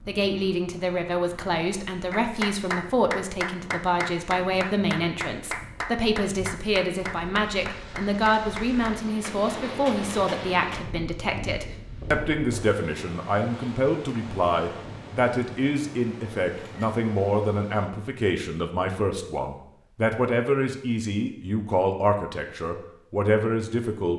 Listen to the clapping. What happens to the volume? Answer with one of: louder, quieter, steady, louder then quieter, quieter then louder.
quieter.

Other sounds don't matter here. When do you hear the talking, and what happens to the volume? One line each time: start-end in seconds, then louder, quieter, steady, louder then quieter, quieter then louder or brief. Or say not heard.
0.1-24.1 steady.